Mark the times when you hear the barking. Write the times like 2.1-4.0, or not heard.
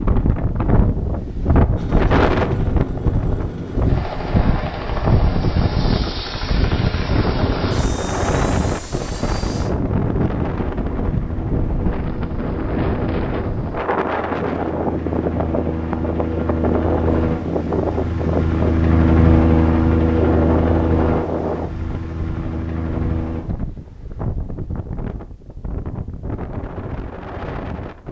not heard.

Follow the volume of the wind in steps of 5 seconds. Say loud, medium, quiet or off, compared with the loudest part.
loud, loud, loud, loud, medium, medium.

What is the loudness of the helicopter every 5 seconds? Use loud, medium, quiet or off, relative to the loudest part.
medium, medium, quiet, loud, loud, off.